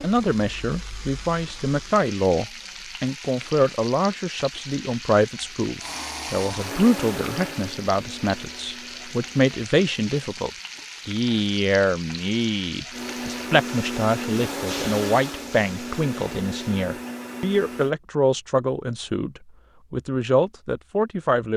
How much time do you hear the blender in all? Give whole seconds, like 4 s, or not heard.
9 s.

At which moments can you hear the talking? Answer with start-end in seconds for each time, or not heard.
0.0-21.5.